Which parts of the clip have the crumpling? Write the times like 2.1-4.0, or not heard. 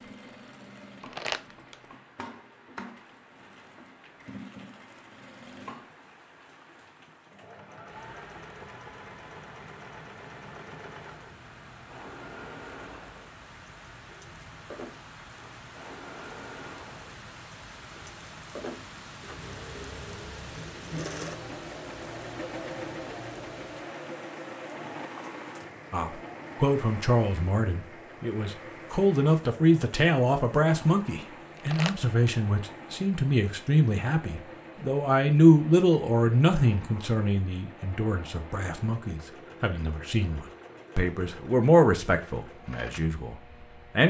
1.0-1.8, 31.6-32.0.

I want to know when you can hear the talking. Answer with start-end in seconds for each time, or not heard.
25.9-43.4.